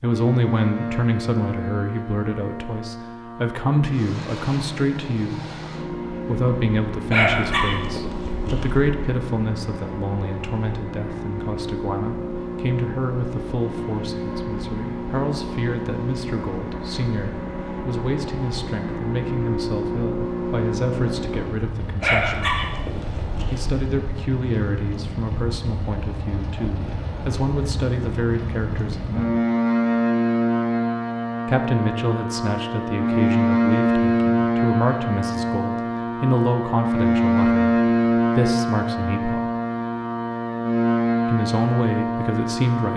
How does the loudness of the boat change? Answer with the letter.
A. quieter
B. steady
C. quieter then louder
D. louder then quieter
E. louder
E.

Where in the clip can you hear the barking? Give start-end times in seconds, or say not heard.
7.1-8.9, 22.0-23.8.